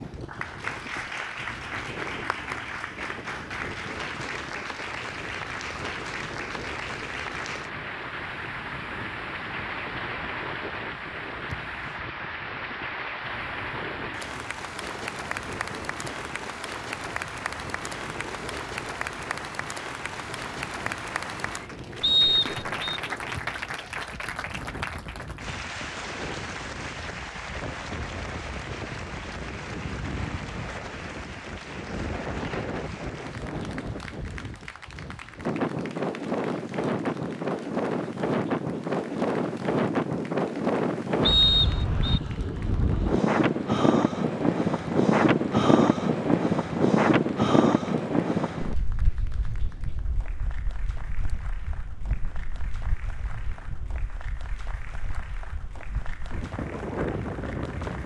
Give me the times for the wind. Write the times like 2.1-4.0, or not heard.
0.0-58.0.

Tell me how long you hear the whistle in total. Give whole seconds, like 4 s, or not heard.
2 s.